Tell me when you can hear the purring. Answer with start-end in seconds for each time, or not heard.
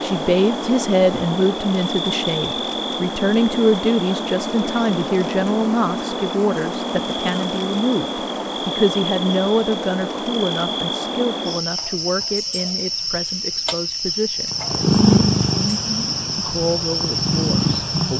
14.5-18.1.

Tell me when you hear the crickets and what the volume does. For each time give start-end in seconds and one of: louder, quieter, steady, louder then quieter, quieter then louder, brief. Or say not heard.
0.0-18.1 steady.